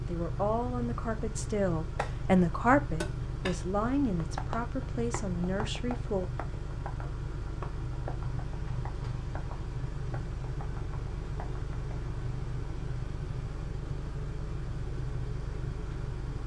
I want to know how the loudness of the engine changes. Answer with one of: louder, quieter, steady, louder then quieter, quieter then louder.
steady.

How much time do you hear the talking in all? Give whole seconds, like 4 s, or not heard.
6 s.